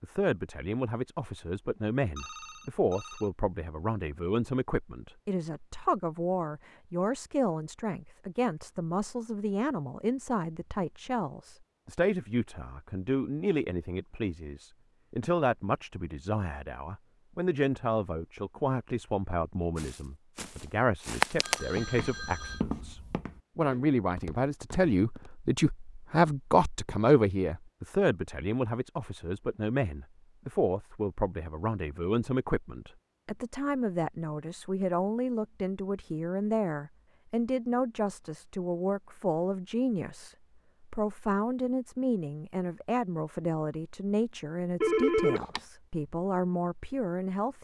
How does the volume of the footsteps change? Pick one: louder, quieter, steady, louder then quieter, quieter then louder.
louder then quieter.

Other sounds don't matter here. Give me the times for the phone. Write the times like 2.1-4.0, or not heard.
2.1-3.3, 21.4-22.6, 44.8-45.6.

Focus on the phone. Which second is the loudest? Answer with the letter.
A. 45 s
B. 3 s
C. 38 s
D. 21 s
A.